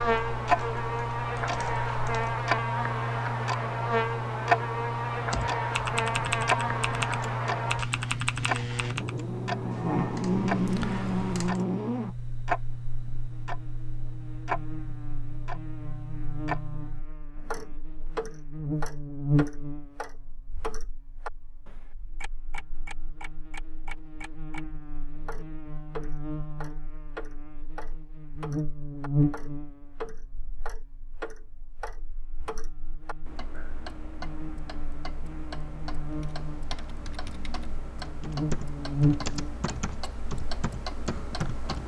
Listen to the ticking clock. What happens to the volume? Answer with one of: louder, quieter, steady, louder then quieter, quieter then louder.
quieter.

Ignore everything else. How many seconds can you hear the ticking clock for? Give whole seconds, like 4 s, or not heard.
42 s.